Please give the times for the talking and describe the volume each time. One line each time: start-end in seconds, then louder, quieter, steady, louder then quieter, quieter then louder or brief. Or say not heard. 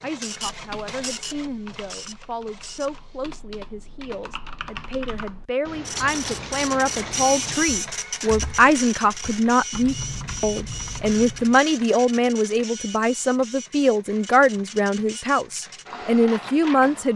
0.0-17.1 louder.